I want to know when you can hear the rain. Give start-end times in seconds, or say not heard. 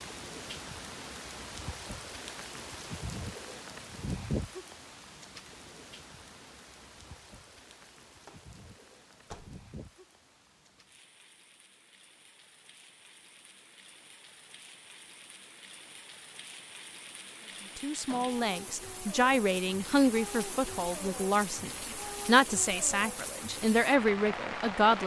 0.0-25.0.